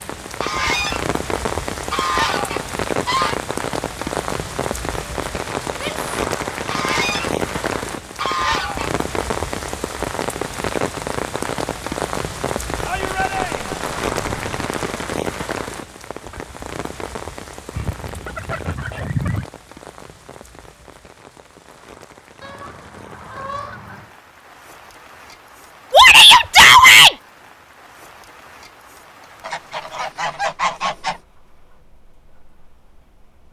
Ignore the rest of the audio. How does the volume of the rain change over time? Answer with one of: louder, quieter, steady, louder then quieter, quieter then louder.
quieter.